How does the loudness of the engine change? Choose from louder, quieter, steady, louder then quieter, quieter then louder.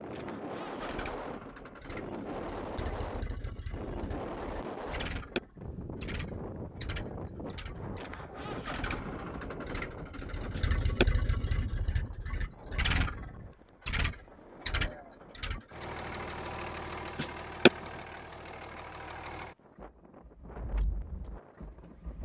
louder then quieter.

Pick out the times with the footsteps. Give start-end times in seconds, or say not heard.
not heard.